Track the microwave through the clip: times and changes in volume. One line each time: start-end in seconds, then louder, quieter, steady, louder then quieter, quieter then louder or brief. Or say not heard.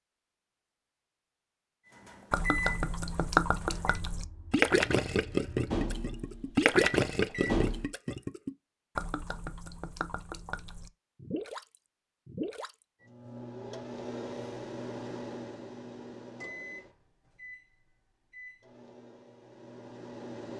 1.9-8.0 quieter then louder
13.0-20.5 quieter.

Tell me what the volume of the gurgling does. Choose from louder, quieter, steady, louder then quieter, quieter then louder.
quieter.